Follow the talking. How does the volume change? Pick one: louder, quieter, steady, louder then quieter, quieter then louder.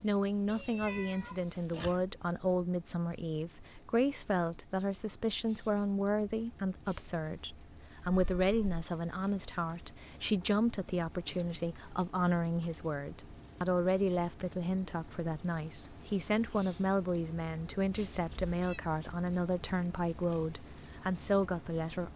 steady.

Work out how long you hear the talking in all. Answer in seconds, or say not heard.
22 s.